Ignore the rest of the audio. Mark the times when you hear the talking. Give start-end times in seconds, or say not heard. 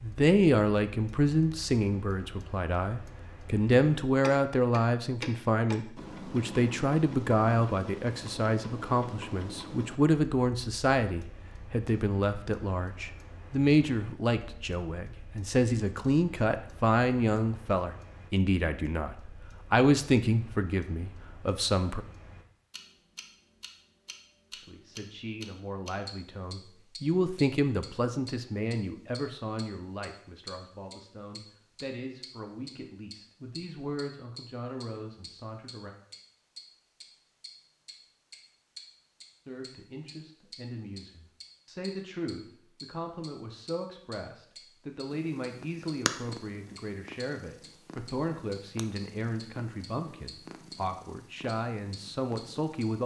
0.0-22.1, 24.5-35.9, 39.5-53.0.